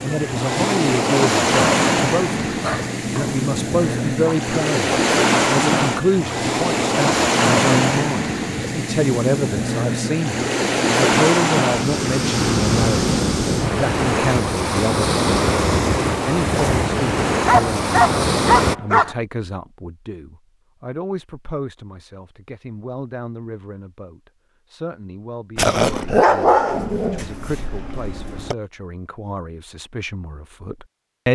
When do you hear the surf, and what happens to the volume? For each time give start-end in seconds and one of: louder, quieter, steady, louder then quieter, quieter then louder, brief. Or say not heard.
0.0-18.8 steady.